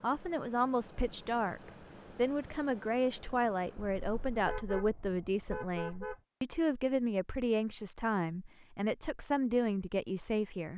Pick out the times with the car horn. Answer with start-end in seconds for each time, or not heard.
4.0-6.2.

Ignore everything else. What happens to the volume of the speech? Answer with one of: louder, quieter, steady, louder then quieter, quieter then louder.
steady.